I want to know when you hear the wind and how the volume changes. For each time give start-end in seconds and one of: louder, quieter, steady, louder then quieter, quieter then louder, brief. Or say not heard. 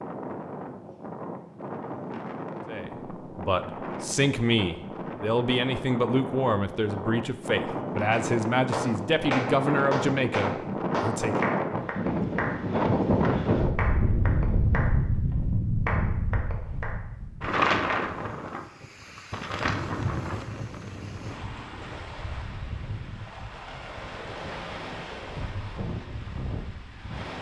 0.0-27.3 louder then quieter.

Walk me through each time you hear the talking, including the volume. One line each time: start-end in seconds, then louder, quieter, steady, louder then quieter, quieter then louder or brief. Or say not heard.
2.6-11.6 steady.